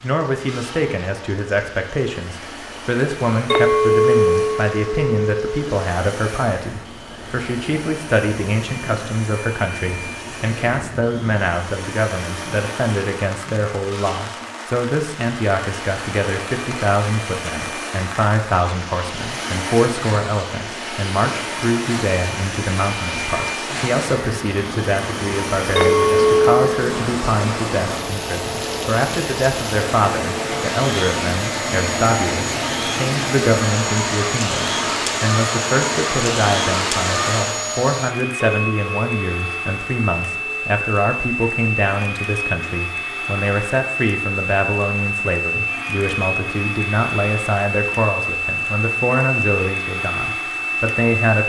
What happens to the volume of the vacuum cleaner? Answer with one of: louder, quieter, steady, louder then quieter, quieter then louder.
louder.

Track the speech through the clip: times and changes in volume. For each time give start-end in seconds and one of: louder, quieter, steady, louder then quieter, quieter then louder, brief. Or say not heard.
0.0-51.4 steady.